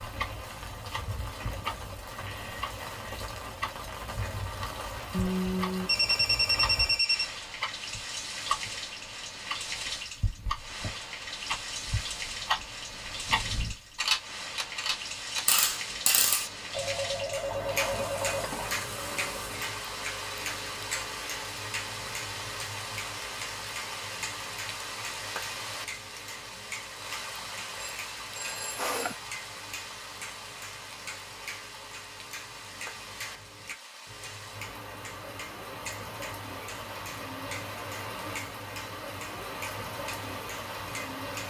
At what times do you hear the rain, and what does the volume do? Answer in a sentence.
You can hear the rain from 0.0 to 41.4 s, at a steady volume.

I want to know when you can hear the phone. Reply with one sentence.
You can hear the phone from 5.1 to 7.2 s, from 16.7 to 18.8 s and from 27.8 to 28.9 s.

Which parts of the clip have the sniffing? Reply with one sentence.
The sniffing can be heard from 28.8 to 29.4 s.